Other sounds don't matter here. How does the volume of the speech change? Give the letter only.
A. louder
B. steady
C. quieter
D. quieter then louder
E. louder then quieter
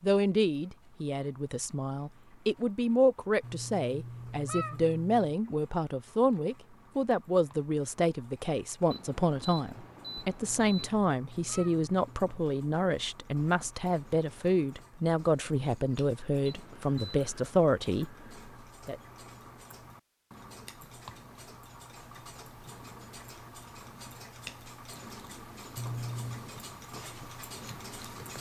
B.